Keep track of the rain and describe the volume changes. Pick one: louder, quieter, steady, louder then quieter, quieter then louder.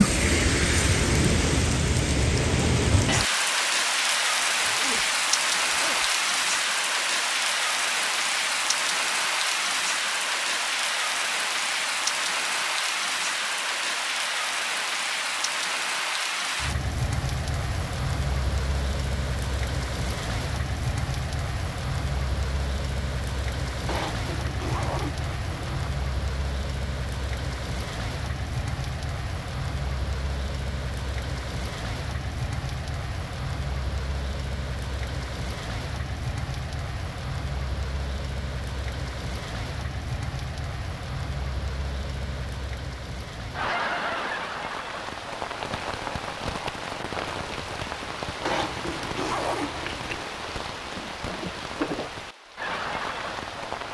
quieter.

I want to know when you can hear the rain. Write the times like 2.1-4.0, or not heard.
0.0-53.9.